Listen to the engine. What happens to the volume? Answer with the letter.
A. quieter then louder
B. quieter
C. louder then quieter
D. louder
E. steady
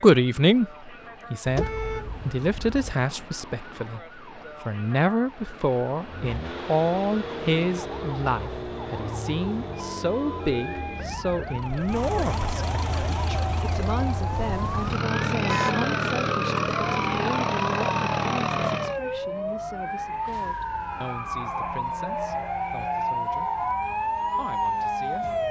D.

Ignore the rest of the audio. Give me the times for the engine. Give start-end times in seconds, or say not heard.
6.0-19.0.